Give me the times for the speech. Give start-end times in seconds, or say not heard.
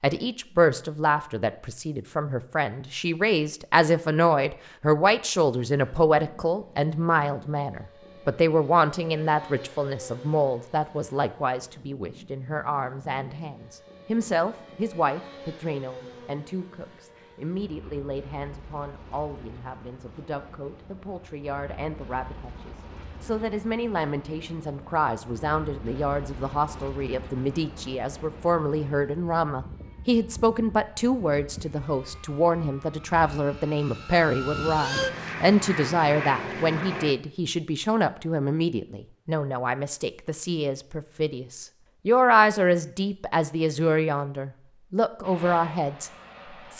0.0-46.7.